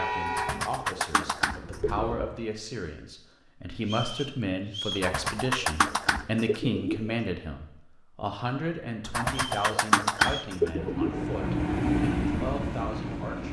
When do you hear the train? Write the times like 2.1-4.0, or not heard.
0.0-2.4, 10.4-13.4.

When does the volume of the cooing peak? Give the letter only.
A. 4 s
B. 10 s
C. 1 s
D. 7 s
B.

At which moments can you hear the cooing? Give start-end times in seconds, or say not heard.
0.2-2.1, 4.9-7.2, 9.1-11.2.